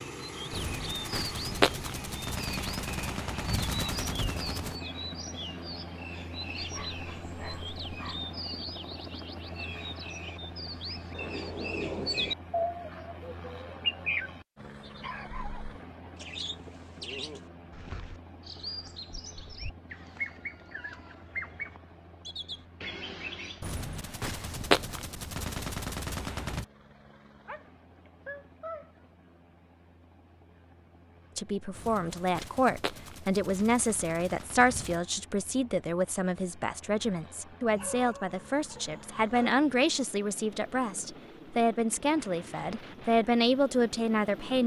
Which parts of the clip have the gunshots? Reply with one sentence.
You can hear the gunshots from 0.5 to 4.8 s, from 23.6 to 26.6 s and from 31.8 to 35.0 s.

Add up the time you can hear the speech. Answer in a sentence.
You can hear the speech for 13 seconds altogether.